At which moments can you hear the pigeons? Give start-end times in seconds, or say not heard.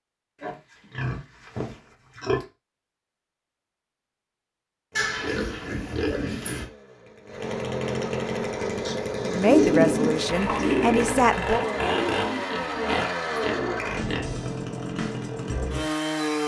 9.3-13.8.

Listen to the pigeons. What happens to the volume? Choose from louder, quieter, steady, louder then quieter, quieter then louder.
quieter.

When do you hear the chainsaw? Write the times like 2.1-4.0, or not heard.
4.9-16.4.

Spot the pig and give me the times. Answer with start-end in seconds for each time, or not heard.
0.4-2.5, 5.0-6.7, 8.8-10.8, 12.5-14.2.